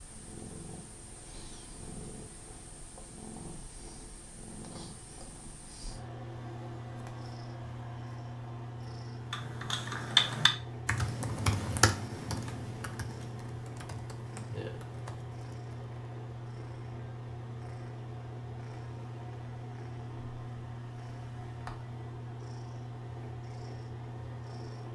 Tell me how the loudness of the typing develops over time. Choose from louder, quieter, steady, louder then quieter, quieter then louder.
quieter.